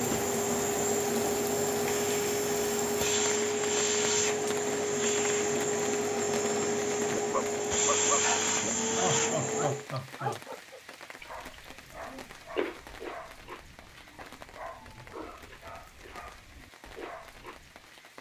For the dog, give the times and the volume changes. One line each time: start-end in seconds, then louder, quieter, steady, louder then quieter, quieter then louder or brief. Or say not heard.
7.1-18.0 quieter.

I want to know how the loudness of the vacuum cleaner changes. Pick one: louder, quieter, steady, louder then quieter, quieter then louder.
steady.